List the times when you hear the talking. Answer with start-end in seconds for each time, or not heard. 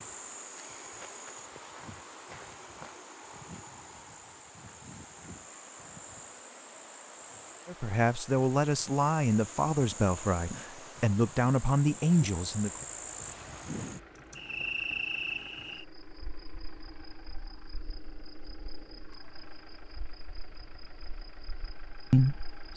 7.7-12.7, 22.1-22.7.